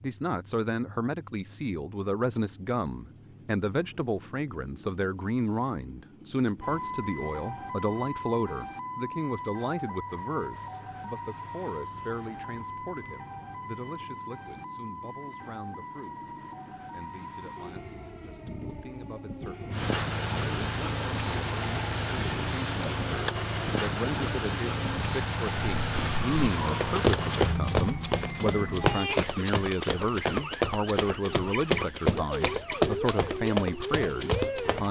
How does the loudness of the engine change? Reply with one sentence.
The volume of the engine goes up.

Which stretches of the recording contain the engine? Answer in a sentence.
The engine can be heard from 0.0 to 27.9 s.